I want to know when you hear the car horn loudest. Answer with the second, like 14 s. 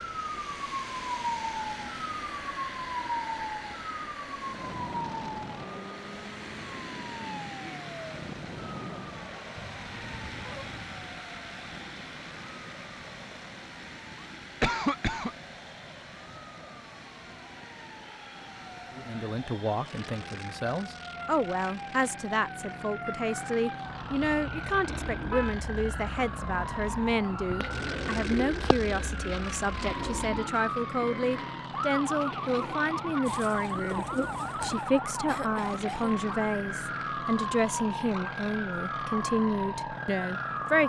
25 s.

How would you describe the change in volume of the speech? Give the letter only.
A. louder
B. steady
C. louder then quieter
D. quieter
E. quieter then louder
B.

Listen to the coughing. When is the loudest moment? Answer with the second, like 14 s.
15 s.